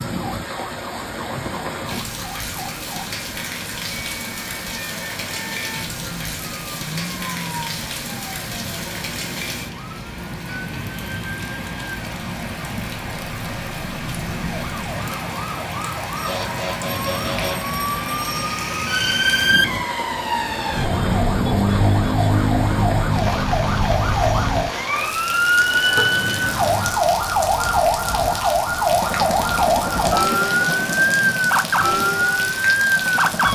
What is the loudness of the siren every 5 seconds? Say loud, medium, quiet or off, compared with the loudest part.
quiet, quiet, quiet, medium, loud, loud, loud.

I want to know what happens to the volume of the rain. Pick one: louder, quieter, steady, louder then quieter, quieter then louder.
steady.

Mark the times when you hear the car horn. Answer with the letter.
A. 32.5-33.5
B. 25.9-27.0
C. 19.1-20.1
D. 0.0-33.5
B.